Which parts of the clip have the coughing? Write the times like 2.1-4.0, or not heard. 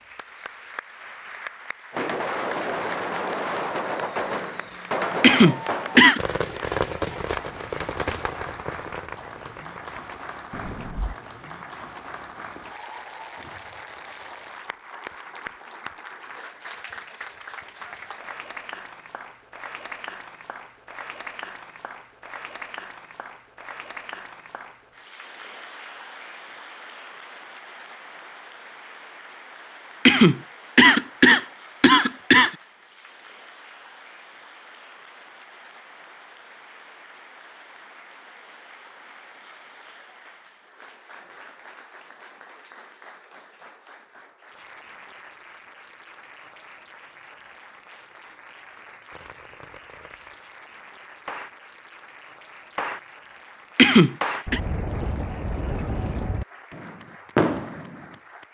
5.2-6.2, 30.1-32.5, 53.8-54.6.